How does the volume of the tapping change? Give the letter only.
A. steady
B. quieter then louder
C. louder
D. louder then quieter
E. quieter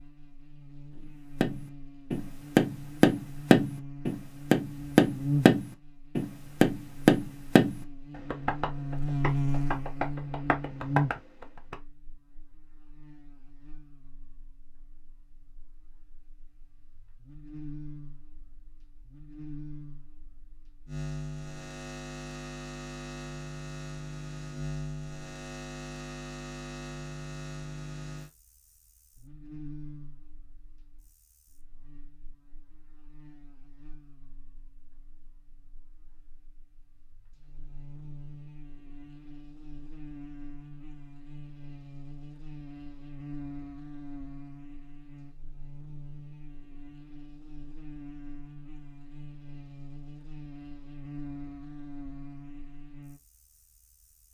E.